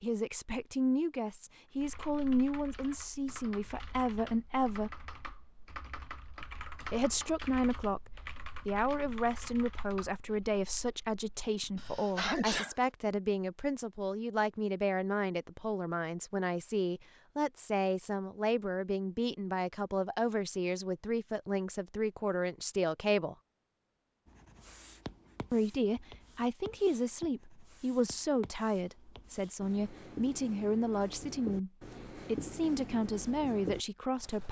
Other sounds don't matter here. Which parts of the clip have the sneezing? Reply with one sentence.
The sneezing can be heard from 11.8 to 12.8 s.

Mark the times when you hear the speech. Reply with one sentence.
The speech can be heard from 0.0 to 5.1 s, from 6.9 to 23.4 s and from 25.5 to 34.4 s.